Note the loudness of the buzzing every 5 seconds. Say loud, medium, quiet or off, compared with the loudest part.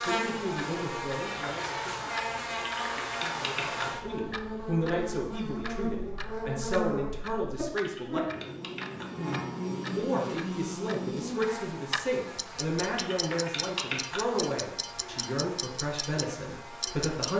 loud, loud, medium, medium.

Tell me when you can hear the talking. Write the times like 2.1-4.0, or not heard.
0.0-8.2, 9.9-17.3.